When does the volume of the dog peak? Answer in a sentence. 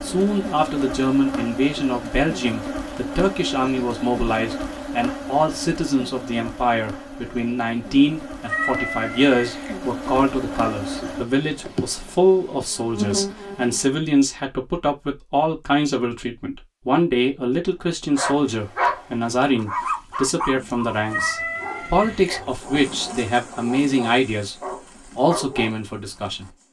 The volume of the dog peaks at 19 seconds.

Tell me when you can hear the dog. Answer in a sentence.
You can hear the dog from 18.1 to 25.8 s.